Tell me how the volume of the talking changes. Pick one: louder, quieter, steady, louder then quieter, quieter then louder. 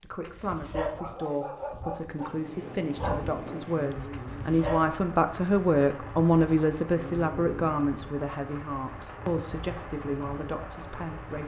louder then quieter.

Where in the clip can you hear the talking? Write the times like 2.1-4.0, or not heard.
0.0-11.4.